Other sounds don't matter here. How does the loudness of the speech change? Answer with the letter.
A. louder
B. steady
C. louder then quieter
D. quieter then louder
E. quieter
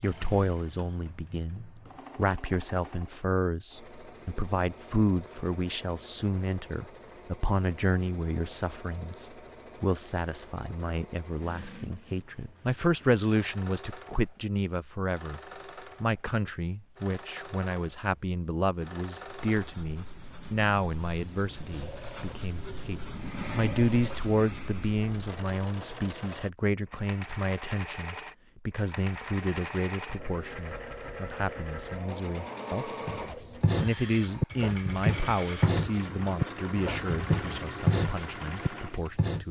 B.